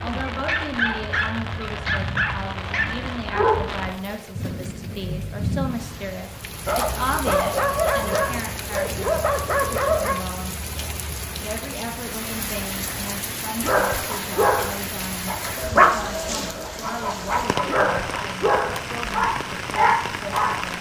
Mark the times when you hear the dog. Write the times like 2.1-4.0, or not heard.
0.1-3.6, 6.7-10.2, 13.6-20.7.